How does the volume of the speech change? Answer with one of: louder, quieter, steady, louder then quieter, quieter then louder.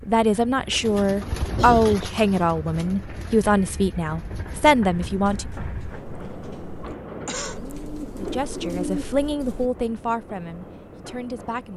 quieter.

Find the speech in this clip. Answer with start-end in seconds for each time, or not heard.
0.0-5.5, 8.2-11.7.